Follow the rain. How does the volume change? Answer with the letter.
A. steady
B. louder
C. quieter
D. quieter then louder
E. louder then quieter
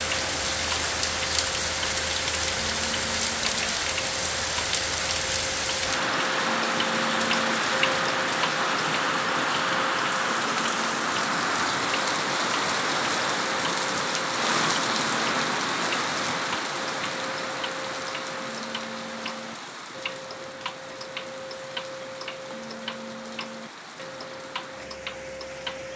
C.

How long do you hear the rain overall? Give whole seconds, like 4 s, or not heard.
26 s.